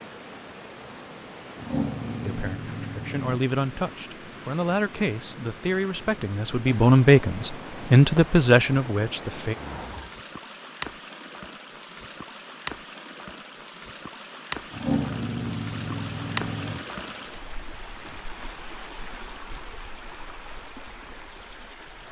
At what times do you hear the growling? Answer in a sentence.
You can hear the growling from 1.6 to 3.4 s, from 9.6 to 10.2 s and from 14.7 to 16.9 s.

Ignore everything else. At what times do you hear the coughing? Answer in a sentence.
The coughing can't be heard in this clip.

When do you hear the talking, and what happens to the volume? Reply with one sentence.
The talking can be heard from 2.2 to 9.6 s, getting louder.